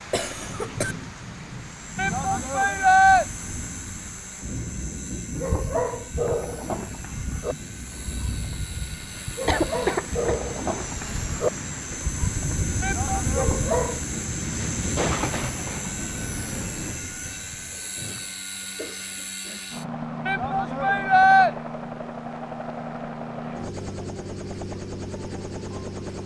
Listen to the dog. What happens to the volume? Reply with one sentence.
The volume of the dog goes down, then up.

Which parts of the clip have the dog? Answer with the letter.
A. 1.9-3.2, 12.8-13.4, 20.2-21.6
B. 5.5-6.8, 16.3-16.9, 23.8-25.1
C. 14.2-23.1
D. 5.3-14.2
D.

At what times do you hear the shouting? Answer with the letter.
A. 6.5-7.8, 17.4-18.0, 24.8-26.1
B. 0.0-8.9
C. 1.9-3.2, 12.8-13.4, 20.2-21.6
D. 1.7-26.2
C.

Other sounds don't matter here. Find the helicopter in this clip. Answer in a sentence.
You can hear the helicopter from 1.7 to 26.2 s.